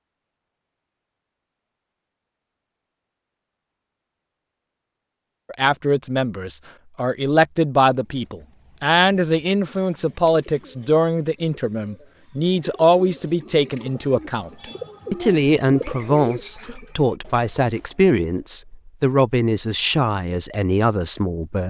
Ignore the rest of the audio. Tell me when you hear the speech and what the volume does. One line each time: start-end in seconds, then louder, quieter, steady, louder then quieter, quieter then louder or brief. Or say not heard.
5.5-21.6 steady.